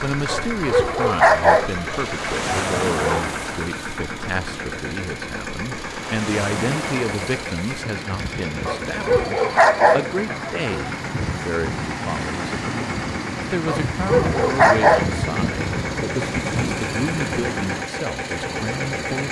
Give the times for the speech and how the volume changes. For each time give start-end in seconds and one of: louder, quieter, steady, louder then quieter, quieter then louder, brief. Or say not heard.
0.0-19.2 steady.